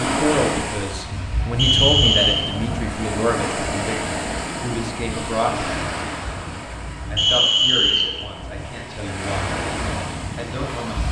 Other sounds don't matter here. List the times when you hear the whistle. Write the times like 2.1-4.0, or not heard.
1.6-2.5, 7.2-8.2.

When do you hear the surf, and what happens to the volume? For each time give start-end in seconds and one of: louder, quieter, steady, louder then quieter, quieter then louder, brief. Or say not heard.
0.0-11.0 quieter then louder.